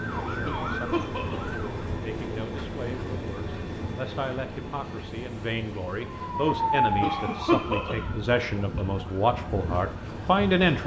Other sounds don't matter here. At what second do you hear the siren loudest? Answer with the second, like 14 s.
7 s.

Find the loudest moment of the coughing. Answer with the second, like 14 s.
8 s.